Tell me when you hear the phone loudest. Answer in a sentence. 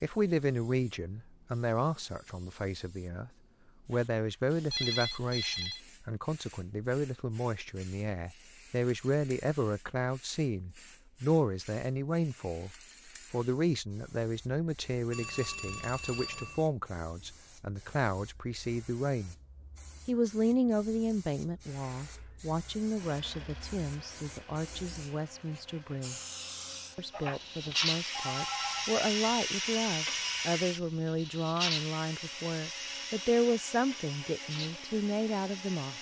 The loudest moment of the phone is at 5 seconds.